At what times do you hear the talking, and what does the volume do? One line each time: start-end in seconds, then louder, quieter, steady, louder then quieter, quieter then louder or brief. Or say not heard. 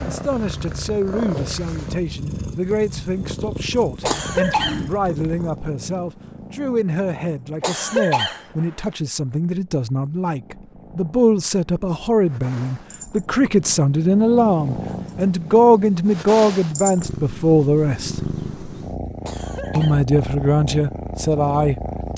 0.0-18.2 louder
19.8-22.1 brief.